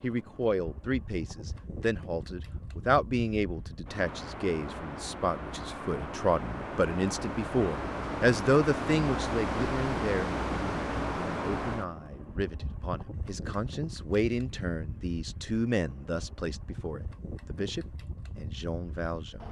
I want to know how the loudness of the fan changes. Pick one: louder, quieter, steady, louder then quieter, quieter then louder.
louder then quieter.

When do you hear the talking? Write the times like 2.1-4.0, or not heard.
0.0-19.4.